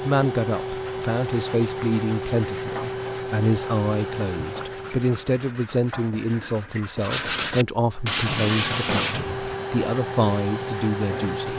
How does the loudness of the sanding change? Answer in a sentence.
The loudness of the sanding goes up, then down.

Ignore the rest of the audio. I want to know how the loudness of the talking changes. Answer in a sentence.
The loudness of the talking stays about the same.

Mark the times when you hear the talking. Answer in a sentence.
The talking can be heard from 0.0 to 11.5 s.